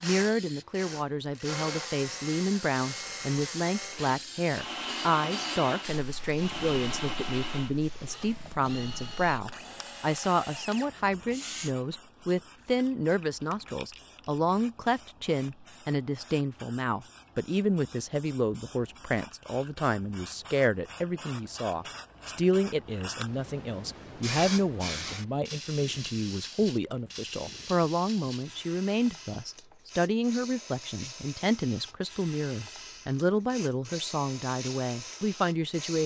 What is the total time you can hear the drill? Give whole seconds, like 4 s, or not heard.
12 s.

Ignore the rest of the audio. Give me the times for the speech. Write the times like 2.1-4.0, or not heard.
0.0-36.0.